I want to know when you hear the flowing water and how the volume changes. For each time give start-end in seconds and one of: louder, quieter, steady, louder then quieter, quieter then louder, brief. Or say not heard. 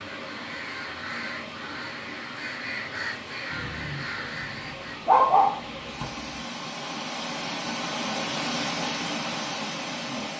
0.0-10.3 louder.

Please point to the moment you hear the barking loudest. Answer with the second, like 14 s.
5 s.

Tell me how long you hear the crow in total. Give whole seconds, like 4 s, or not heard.
5 s.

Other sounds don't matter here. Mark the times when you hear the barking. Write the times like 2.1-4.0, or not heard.
3.5-6.1.